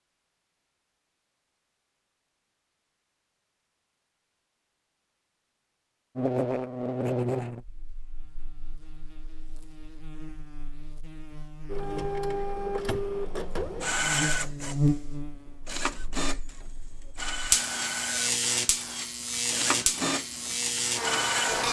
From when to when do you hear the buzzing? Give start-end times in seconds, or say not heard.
6.2-21.6.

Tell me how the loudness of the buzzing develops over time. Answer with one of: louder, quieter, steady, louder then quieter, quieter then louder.
quieter then louder.